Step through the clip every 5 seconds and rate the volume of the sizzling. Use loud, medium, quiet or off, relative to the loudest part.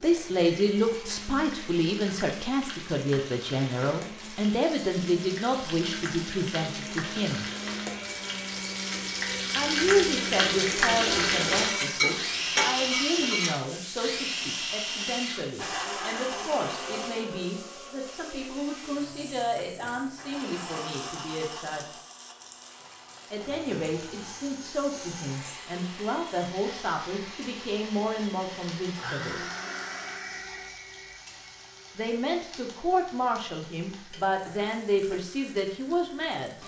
quiet, medium, loud, quiet, quiet, quiet, quiet, quiet.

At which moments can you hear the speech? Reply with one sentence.
You can hear the speech from 0.0 to 7.5 s, from 9.6 to 21.9 s, from 23.3 to 29.4 s and from 31.9 to 36.5 s.